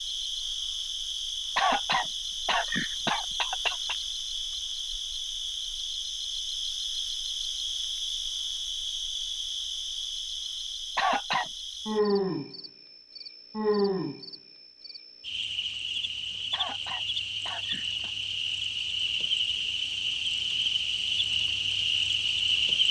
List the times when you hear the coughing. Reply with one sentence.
The coughing can be heard from 1.6 to 4.0 s, from 10.9 to 11.5 s and from 16.5 to 18.1 s.